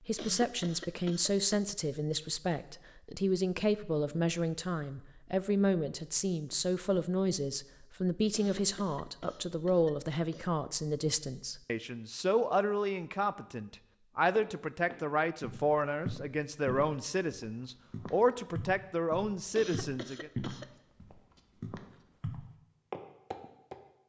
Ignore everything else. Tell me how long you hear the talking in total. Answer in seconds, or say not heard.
20 s.